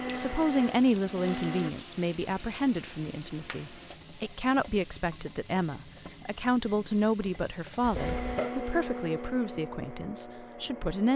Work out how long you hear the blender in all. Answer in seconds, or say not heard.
5 s.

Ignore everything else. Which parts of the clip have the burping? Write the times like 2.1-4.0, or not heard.
7.8-8.5.